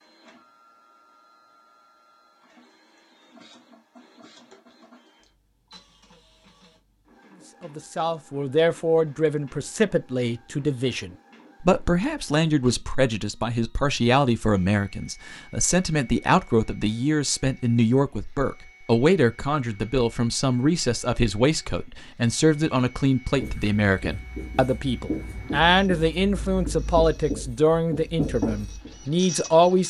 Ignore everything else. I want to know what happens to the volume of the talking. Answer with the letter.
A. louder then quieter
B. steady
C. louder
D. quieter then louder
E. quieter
B.